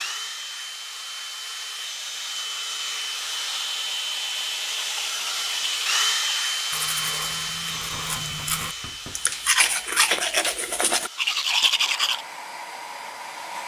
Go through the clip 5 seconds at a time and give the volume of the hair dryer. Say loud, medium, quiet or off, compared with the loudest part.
loud, loud, medium.